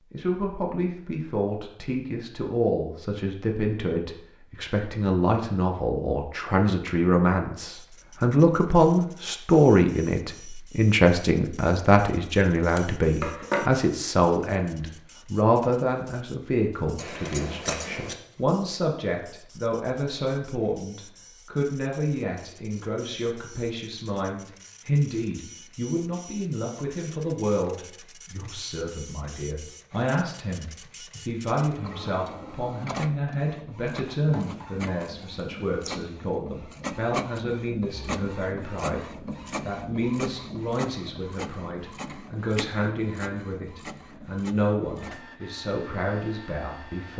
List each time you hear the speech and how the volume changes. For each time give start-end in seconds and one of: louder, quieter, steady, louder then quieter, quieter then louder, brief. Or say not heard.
0.1-47.1 quieter.